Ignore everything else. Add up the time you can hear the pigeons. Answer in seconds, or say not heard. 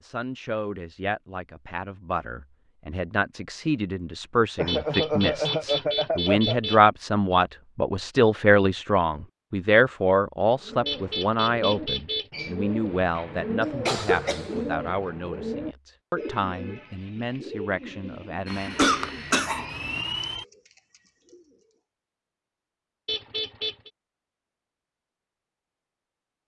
11 s.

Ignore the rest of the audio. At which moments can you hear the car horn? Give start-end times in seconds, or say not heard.
4.7-6.8, 10.8-12.3, 23.1-23.9.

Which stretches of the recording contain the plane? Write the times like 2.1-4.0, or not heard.
18.4-20.4.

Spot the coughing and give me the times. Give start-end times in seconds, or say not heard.
4.5-6.8, 13.6-15.1, 18.5-19.8.